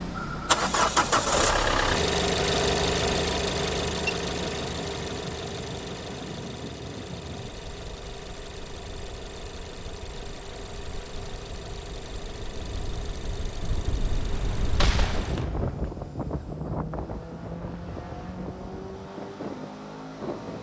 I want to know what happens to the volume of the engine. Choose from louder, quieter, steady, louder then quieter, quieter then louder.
quieter.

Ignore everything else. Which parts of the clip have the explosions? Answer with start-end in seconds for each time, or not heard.
14.8-15.9.